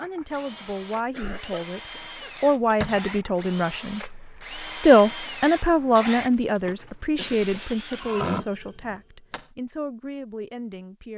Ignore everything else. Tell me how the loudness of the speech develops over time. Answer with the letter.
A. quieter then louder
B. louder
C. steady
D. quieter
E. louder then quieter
E.